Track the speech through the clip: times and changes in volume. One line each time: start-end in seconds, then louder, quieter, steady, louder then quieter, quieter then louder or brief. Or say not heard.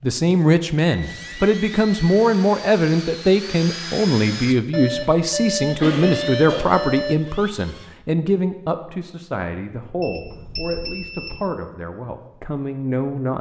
0.0-13.3 quieter.